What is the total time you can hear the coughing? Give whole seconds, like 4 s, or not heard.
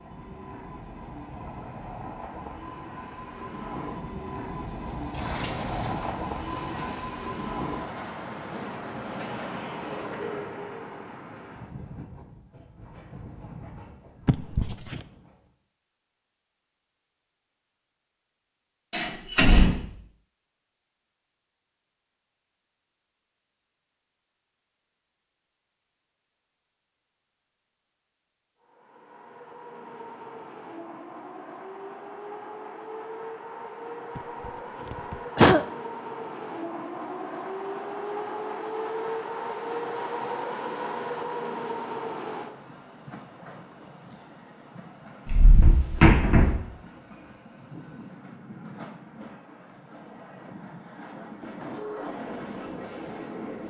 2 s.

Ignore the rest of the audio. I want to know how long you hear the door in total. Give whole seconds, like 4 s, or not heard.
4 s.